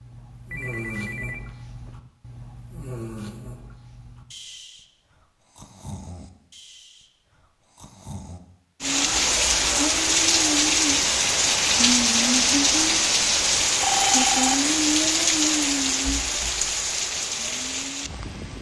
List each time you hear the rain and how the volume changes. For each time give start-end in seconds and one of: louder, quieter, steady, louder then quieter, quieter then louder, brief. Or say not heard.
8.8-18.5 quieter.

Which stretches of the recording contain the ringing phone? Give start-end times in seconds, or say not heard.
0.5-2.0, 8.8-9.9, 13.8-14.6.